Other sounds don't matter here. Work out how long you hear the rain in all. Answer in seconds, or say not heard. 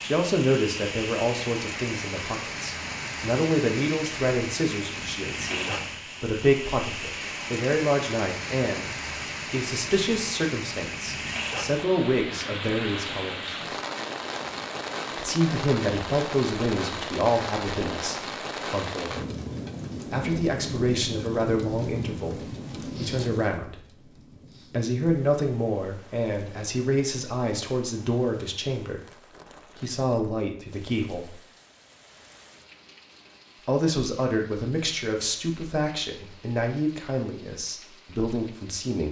39 s.